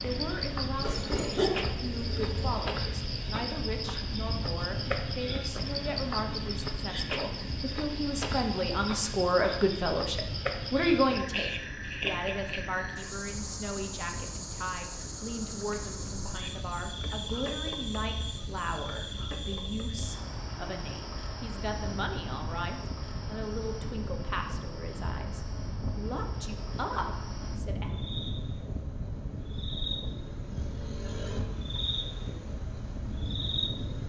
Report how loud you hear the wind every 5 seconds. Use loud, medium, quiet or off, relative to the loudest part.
loud, loud, medium, medium, loud, loud, loud.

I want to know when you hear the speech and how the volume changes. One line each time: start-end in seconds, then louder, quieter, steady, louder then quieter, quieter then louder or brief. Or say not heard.
0.0-28.0 louder then quieter.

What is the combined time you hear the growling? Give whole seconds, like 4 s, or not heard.
2 s.